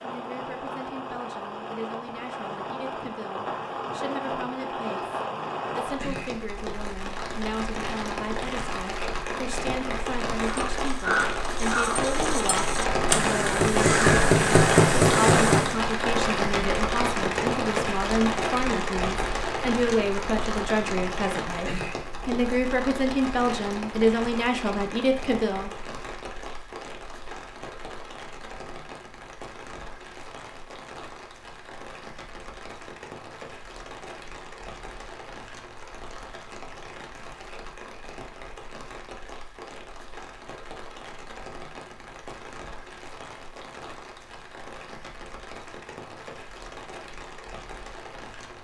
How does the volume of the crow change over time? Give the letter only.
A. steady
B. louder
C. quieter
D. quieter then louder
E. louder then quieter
B.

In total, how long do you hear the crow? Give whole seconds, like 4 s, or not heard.
5 s.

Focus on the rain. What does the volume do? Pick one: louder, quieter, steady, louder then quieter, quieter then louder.
louder then quieter.